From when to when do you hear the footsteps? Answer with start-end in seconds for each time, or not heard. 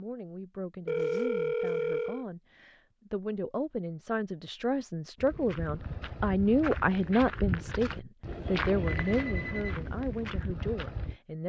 5.2-11.2.